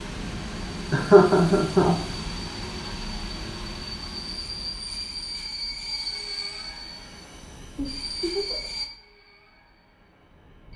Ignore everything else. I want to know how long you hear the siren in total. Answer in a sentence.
The siren can't be heard in this clip.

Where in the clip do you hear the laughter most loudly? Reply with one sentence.
The volume of the laughter peaks at 1 second.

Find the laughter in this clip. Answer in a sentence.
You can hear the laughter from 0.9 to 1.9 s and from 7.8 to 8.7 s.